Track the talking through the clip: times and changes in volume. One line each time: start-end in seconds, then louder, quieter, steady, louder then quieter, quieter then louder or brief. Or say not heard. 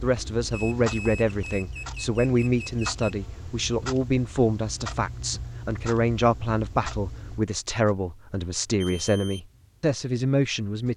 0.0-10.9 steady.